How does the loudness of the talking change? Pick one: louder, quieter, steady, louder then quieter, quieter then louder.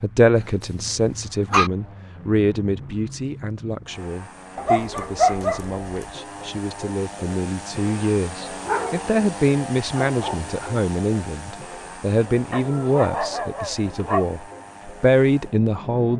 quieter then louder.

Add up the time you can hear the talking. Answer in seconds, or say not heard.
16 s.